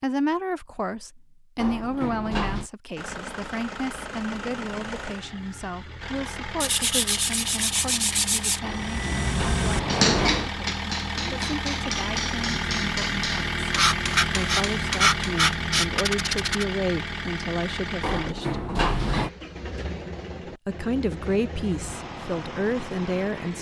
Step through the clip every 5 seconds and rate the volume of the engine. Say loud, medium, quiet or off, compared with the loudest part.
medium, medium, loud, loud, medium.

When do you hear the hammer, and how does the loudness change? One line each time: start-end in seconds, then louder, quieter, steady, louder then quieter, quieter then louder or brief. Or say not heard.
8.7-15.4 quieter.